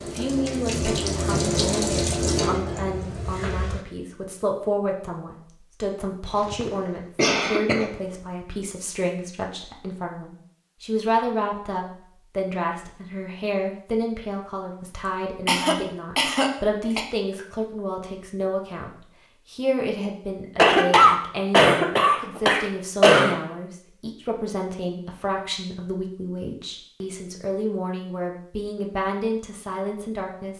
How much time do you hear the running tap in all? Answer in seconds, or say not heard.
4 s.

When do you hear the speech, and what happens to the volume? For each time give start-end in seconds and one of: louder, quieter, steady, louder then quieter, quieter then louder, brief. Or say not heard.
0.0-30.5 steady.